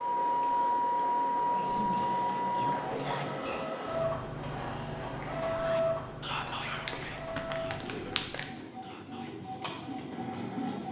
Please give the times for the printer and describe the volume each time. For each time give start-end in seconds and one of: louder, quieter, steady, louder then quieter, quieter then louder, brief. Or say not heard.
0.0-10.8 quieter.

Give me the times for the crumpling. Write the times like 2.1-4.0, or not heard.
6.8-8.4.